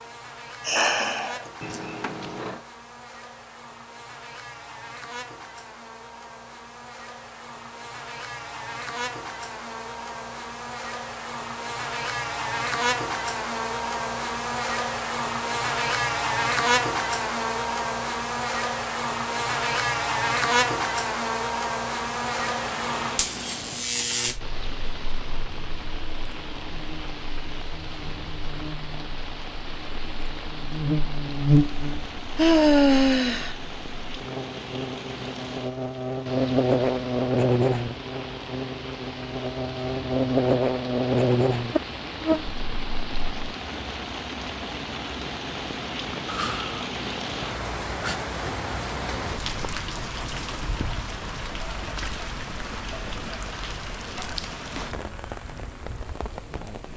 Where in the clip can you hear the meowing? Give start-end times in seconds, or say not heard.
1.6-2.6.